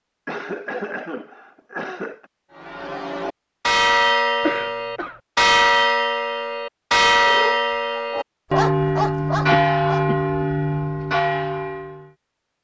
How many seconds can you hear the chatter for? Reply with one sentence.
The chatter can't be heard in this clip.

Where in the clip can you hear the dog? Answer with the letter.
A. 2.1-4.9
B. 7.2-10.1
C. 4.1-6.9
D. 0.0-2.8
B.